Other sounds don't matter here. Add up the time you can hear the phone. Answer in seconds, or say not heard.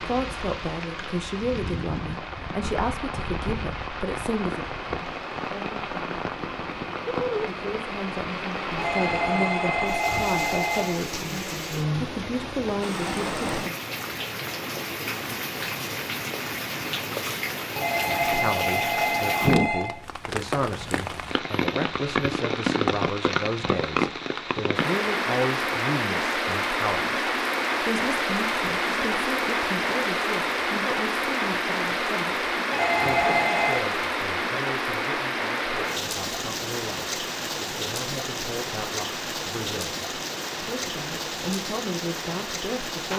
6 s.